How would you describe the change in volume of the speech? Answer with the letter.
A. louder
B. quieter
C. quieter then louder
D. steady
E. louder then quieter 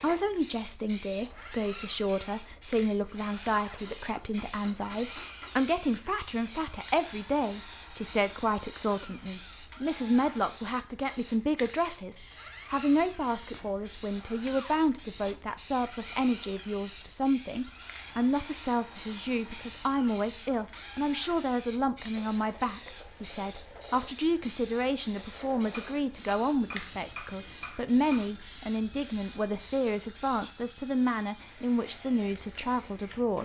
D.